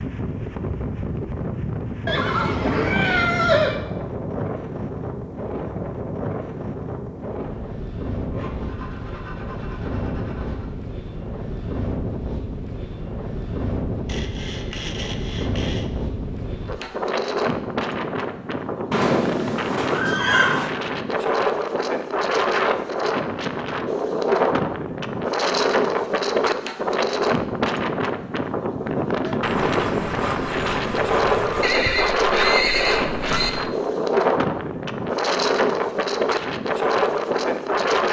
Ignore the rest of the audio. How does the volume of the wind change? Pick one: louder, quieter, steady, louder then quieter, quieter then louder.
louder.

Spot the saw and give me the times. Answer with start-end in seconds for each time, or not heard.
8.2-10.7, 14.1-15.9, 29.4-31.7.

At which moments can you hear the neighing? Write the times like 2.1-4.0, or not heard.
2.0-3.8, 18.9-20.8, 31.6-33.5.